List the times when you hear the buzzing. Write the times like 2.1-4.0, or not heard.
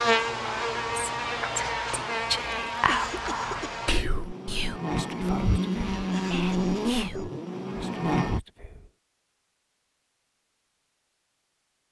0.0-8.4.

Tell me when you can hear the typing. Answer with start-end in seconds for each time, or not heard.
not heard.